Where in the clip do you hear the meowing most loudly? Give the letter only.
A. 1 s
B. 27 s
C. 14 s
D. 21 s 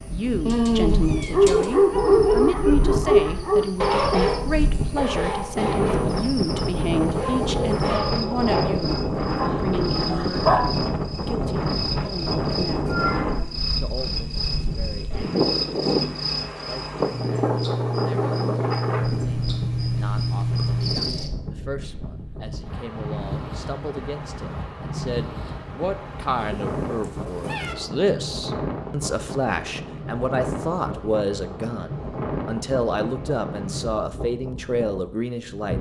A.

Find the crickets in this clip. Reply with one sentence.
The crickets can be heard from 0.0 to 21.3 s.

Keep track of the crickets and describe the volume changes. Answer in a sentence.
The volume of the crickets goes up.